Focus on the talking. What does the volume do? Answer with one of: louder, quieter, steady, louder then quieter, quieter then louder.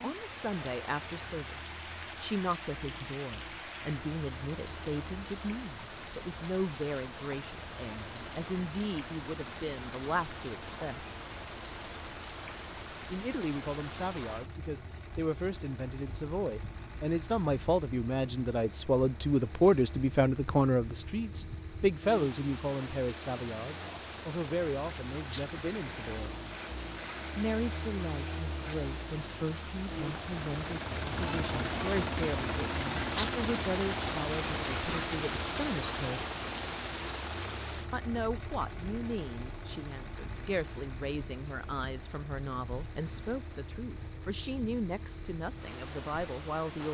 louder then quieter.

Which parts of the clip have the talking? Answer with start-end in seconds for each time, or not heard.
0.0-11.1, 13.1-26.4, 27.4-36.2, 37.9-46.8.